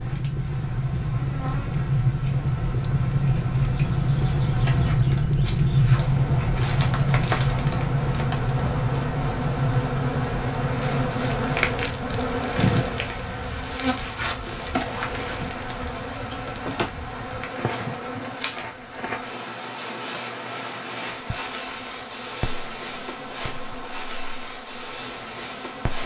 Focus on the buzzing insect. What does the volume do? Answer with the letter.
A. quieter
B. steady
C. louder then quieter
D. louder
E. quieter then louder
C.